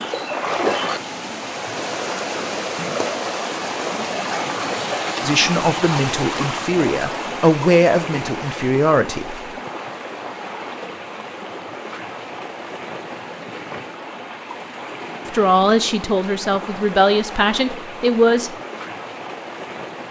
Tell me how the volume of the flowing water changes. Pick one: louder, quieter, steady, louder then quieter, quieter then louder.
quieter.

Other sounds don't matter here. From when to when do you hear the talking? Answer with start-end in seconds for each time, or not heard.
5.2-9.4, 15.2-18.6.